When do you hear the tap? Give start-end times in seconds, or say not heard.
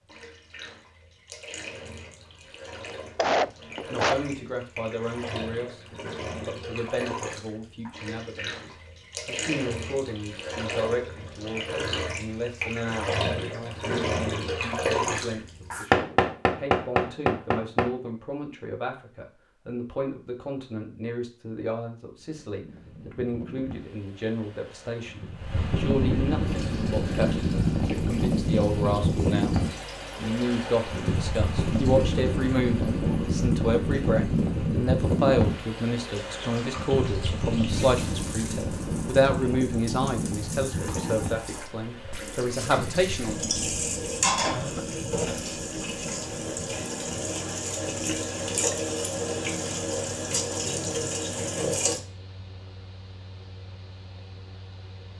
0.0-15.8, 26.4-52.0.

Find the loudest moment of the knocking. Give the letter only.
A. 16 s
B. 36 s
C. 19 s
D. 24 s
A.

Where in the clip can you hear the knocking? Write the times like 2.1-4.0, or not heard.
15.9-17.9.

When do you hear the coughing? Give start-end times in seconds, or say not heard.
3.1-4.2, 44.5-45.5.